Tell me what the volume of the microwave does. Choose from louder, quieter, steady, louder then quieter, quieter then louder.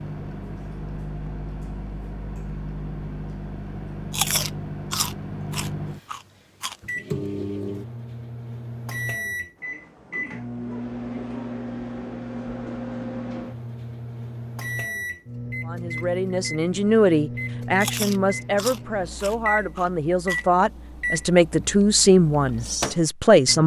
steady.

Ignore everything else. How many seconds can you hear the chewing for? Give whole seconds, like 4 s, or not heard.
5 s.